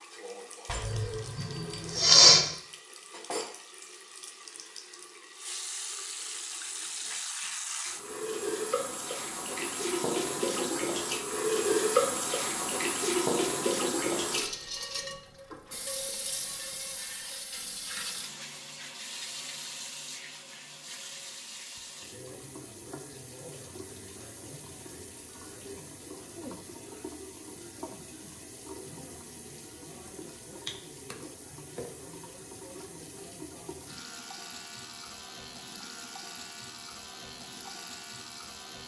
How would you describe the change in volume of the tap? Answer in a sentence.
The loudness of the tap goes up, then down.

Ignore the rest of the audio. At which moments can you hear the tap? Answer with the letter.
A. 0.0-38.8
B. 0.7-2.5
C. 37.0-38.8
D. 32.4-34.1
A.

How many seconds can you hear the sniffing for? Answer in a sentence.
The sniffing can be heard for 2 seconds in total.